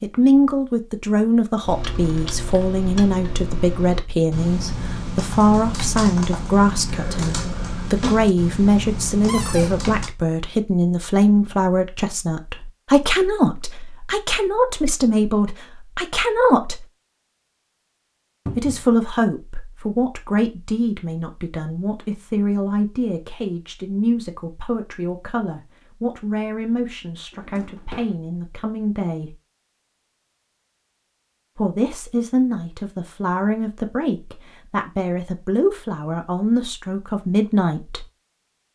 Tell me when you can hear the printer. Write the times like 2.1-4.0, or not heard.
not heard.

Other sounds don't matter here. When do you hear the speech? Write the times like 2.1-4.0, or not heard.
0.0-16.9, 18.6-29.4, 31.6-38.0.